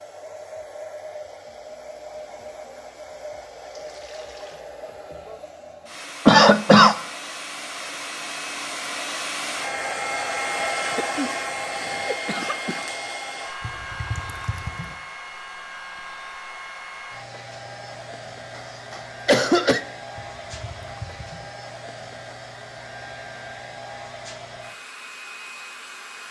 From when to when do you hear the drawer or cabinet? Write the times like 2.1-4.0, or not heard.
not heard.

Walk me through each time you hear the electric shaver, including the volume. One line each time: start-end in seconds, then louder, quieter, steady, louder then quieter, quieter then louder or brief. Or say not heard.
not heard.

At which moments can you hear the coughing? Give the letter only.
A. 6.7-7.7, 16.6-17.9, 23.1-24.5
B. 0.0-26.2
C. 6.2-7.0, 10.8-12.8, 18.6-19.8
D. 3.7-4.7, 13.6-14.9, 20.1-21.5
C.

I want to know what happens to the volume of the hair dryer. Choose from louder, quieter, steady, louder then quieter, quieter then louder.
louder then quieter.